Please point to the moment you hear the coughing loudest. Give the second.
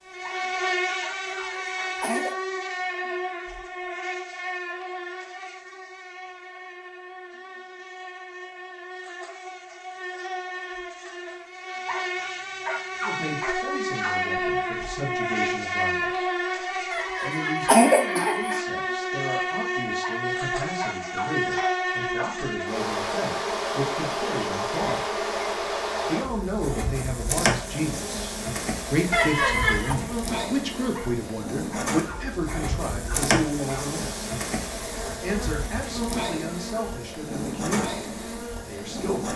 18 s.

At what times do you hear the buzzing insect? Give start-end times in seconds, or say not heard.
0.0-39.3.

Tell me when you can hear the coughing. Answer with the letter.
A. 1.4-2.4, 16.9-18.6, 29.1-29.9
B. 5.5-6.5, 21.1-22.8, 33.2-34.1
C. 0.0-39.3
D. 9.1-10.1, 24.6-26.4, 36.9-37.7
A.